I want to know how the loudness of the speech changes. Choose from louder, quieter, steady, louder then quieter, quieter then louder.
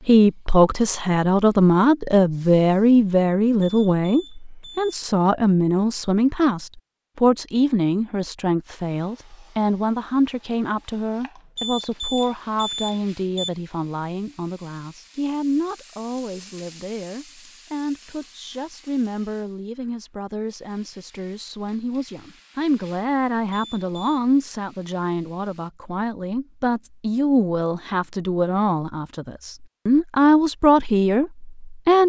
quieter then louder.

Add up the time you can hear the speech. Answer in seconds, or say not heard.
32 s.